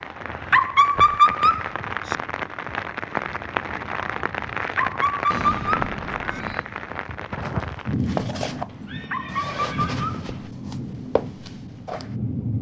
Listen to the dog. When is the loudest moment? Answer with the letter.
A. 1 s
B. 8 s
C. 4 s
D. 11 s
A.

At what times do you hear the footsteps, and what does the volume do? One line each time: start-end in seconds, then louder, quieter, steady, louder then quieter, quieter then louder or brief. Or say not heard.
7.4-12.2 quieter then louder.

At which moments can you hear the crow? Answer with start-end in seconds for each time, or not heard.
not heard.